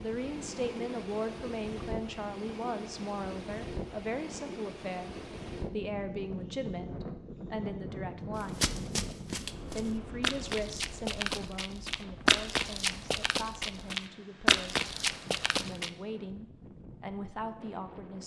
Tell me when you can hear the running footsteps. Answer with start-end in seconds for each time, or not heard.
8.3-15.9.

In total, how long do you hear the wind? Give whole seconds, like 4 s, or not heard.
18 s.